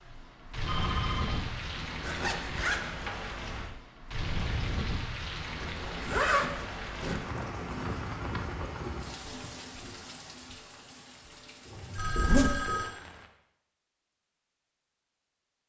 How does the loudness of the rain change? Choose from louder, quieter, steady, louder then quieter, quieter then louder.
quieter.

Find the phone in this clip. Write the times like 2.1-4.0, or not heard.
0.7-2.4, 11.7-12.9.